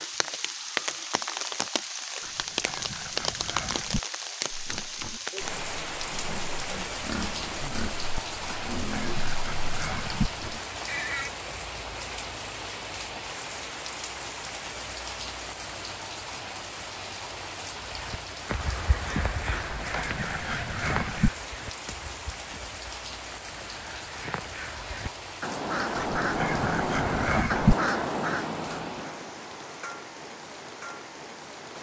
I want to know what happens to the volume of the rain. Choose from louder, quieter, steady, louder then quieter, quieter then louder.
quieter.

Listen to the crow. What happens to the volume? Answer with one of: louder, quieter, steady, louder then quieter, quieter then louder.
quieter then louder.